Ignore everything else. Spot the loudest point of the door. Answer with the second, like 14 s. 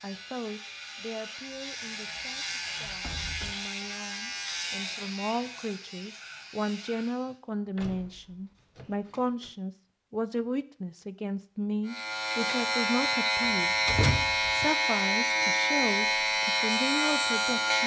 14 s.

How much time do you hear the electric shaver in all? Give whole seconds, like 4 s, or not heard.
13 s.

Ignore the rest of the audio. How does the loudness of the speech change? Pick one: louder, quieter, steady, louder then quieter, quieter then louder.
louder.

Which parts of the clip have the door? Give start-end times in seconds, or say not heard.
1.9-3.5, 7.8-9.5, 13.4-14.7.